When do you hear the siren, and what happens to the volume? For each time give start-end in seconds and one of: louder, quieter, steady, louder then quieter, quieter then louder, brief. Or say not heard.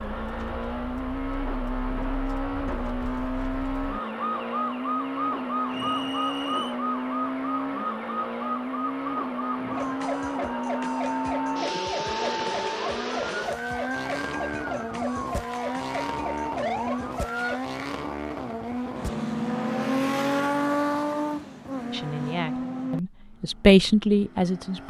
0.0-17.6 louder.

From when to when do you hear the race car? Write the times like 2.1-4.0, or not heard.
0.0-24.8.